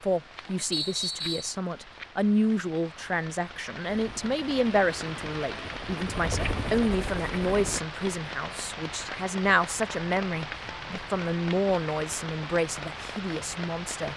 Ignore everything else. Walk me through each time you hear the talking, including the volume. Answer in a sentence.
You can hear the talking from 0.0 to 14.1 s, at a steady volume.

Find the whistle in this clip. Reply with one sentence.
You can hear the whistle from 0.7 to 1.6 s.